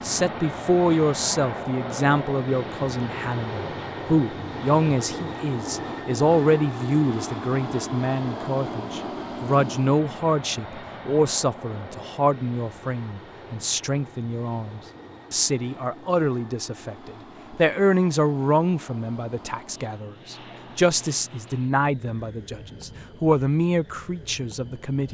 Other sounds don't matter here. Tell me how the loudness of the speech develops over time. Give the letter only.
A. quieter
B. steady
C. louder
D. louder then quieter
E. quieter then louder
B.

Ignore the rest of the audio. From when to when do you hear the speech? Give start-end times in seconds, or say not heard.
0.0-25.0.